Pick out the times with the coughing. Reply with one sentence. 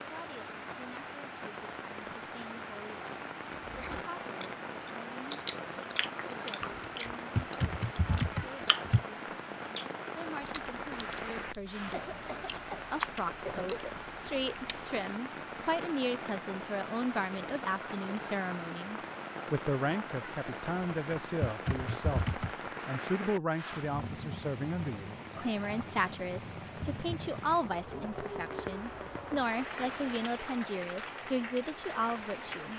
The coughing can be heard from 11.9 to 12.8 s and from 13.4 to 13.9 s.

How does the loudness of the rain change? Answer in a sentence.
The volume of the rain stays about the same.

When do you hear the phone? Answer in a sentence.
You can't hear the phone here.